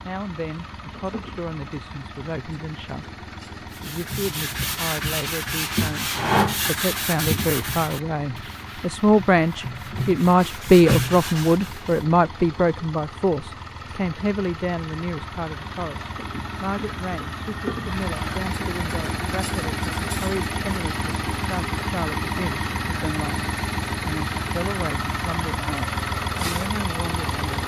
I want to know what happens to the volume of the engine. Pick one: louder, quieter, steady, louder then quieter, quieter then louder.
louder.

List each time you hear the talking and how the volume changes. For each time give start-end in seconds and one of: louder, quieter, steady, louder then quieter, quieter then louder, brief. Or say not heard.
0.0-27.6 louder then quieter.